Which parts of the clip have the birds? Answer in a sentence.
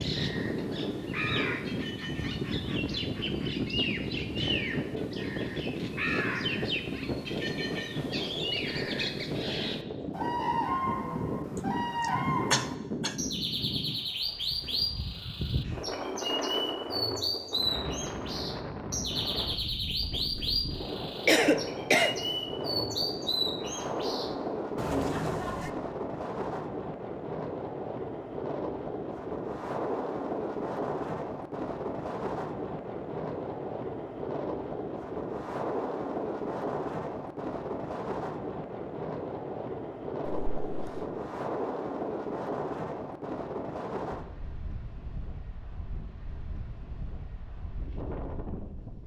You can hear the birds from 0.0 to 25.7 s.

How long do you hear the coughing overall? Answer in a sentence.
You can hear the coughing for 3 seconds altogether.